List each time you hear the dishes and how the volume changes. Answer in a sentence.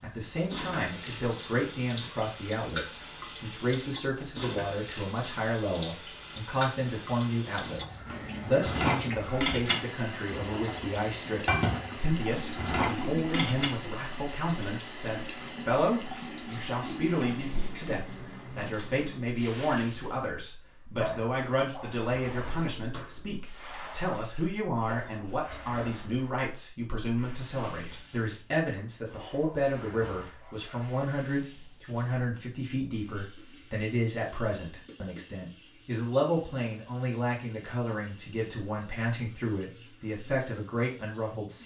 The dishes can be heard from 7.7 to 13.8 s, getting quieter then louder.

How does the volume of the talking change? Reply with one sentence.
The loudness of the talking stays about the same.